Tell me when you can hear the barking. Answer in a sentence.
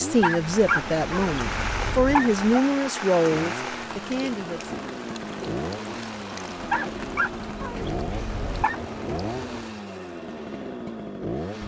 The barking can be heard from 0.2 to 2.4 s and from 6.7 to 8.8 s.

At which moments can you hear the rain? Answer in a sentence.
You can hear the rain from 0.0 to 9.8 s.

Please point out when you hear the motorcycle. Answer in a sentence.
You can hear the motorcycle from 0.0 to 11.6 s.